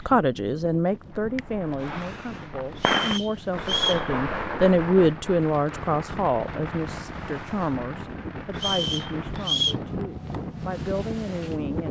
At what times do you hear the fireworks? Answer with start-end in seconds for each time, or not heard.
1.1-10.4.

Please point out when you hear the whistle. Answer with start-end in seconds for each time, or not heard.
2.8-4.0, 8.6-9.8.